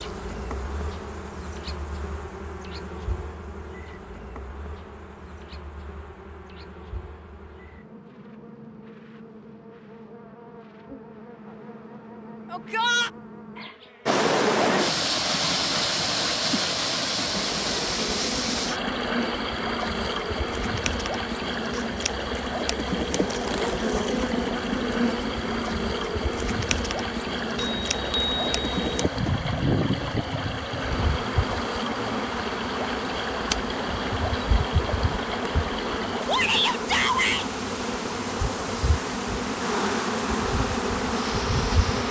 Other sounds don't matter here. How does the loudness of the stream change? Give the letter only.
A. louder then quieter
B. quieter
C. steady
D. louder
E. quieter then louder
B.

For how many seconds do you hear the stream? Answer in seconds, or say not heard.
28 s.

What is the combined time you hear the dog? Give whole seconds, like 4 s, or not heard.
not heard.